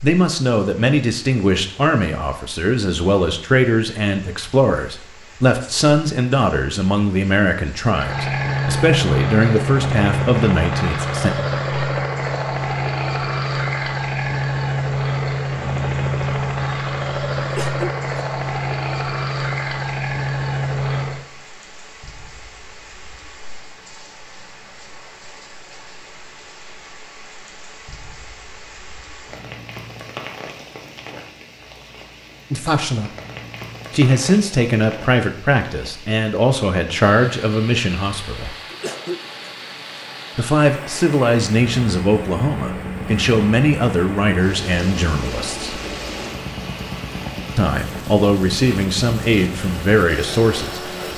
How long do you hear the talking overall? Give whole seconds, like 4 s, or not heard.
25 s.